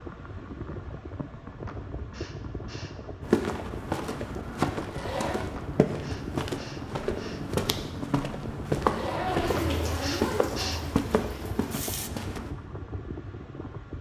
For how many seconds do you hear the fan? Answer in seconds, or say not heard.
14 s.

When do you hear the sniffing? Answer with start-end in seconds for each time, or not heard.
1.6-3.0, 5.5-7.4, 9.6-10.8.